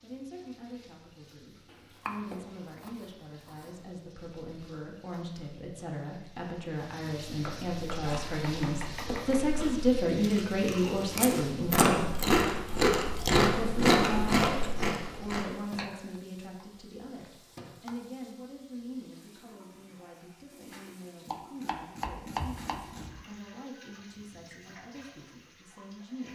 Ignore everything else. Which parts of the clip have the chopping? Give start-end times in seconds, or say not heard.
1.7-3.7, 7.4-9.4, 15.7-16.6, 17.2-17.9, 21.2-23.2.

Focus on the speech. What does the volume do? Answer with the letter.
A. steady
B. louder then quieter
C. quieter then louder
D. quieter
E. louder
B.